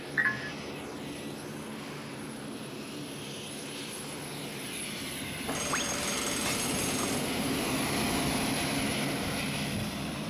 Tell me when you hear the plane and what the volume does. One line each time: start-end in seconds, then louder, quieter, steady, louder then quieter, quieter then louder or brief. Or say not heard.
0.0-10.2 louder.